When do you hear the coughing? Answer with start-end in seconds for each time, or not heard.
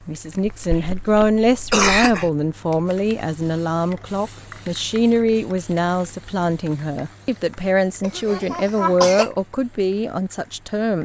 0.5-2.3, 8.0-9.3.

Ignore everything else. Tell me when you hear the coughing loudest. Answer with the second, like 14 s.
2 s.